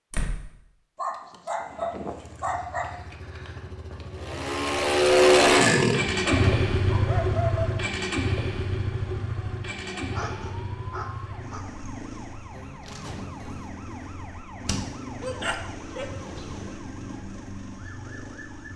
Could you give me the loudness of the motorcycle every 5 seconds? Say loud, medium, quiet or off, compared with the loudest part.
medium, loud, quiet, quiet.